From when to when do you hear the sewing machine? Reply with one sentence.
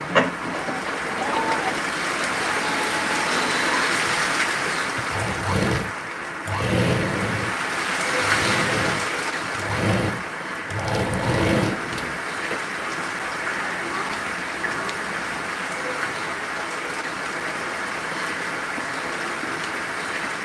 The sewing machine can be heard from 0.0 to 12.6 s.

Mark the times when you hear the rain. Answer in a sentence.
You can hear the rain from 0.0 to 20.4 s.